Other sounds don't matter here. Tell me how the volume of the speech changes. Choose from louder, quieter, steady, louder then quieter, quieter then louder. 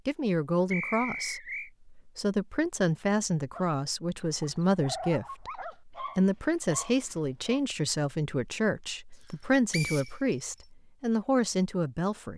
steady.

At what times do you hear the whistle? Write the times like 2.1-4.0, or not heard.
0.7-1.7, 9.7-10.3.